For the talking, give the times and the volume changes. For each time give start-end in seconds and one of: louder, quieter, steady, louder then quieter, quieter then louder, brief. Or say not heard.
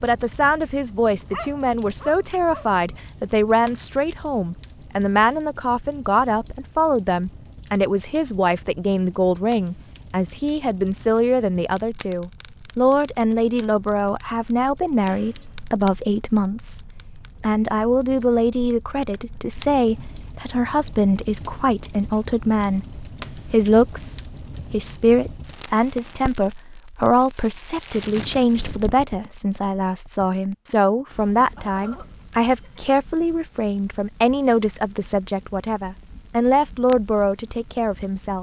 0.0-38.3 steady.